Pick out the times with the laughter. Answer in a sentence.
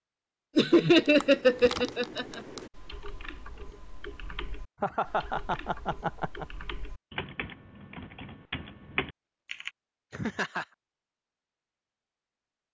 The laughter can be heard from 0.6 to 2.4 s, from 4.8 to 6.5 s and from 10.1 to 10.7 s.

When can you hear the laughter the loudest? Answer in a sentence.
The volume of the laughter peaks at 1 second.